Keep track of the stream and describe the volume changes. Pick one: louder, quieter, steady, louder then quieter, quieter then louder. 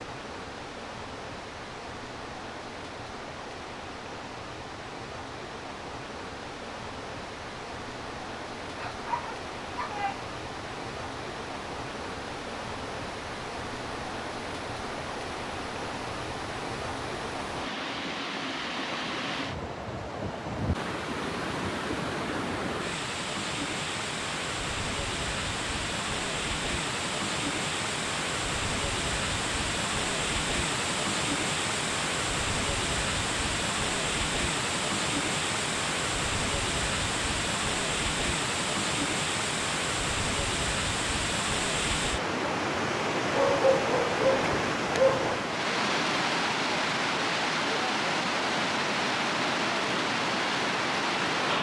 louder.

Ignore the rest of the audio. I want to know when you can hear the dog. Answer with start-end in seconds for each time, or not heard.
8.8-10.2, 43.3-45.4.